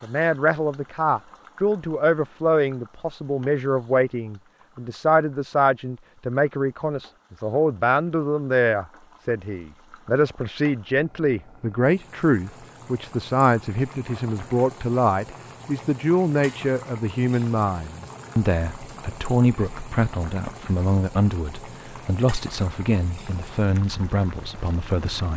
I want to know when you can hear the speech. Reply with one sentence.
The speech can be heard from 0.0 to 25.3 s.